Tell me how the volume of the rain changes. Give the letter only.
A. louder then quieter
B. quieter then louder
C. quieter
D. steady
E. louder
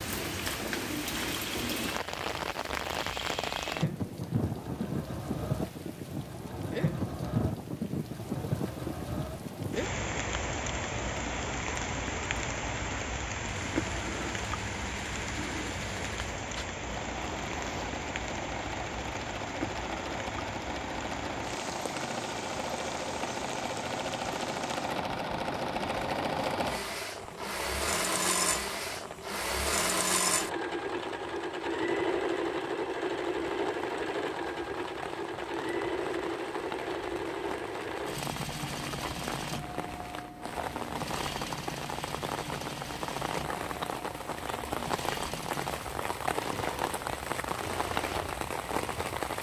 B.